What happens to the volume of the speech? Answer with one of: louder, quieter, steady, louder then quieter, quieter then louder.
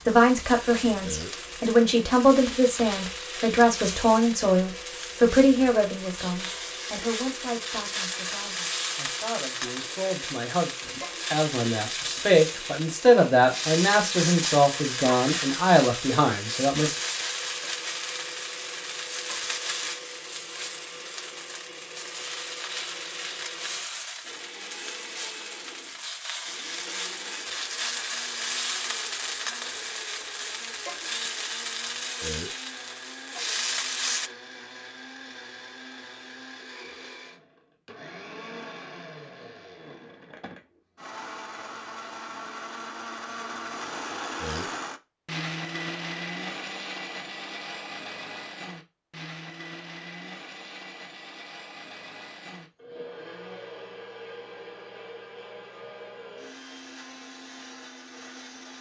quieter then louder.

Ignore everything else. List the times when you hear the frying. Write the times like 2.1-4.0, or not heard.
0.0-34.3.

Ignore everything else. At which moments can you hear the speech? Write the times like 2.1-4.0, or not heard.
0.0-16.9.